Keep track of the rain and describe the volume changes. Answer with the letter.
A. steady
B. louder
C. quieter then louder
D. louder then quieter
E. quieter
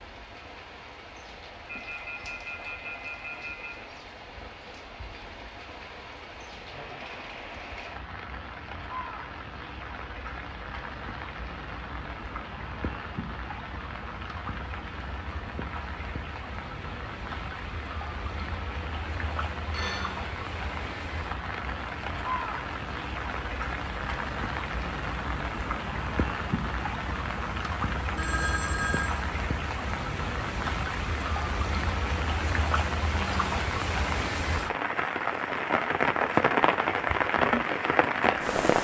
B.